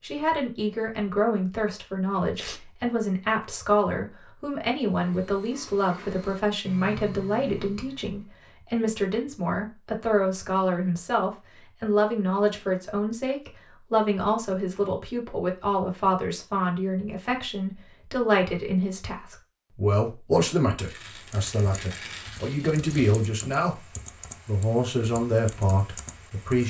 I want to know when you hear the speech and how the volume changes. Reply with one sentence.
The speech can be heard from 0.0 to 26.6 s, at a steady volume.